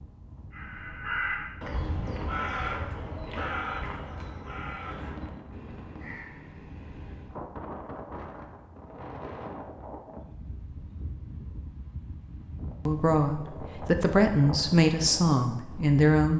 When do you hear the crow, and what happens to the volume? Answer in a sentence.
You can hear the crow from 0.5 to 7.3 s, getting quieter.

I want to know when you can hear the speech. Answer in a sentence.
The speech can be heard from 12.8 to 16.3 s.